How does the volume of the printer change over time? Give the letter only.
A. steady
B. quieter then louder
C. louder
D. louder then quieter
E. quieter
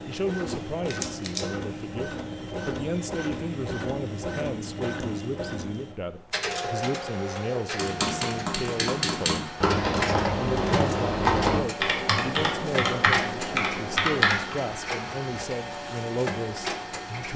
A.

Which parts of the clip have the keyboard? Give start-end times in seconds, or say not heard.
7.8-14.6.